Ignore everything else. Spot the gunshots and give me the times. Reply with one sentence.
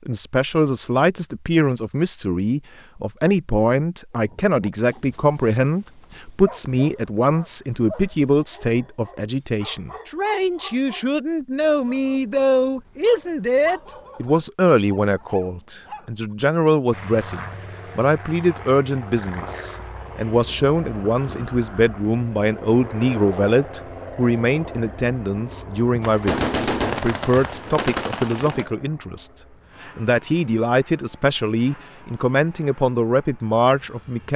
You can hear the gunshots from 26.0 to 28.7 s.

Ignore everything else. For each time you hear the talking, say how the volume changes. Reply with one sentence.
You can hear the talking from 0.1 to 34.3 s, at a steady volume.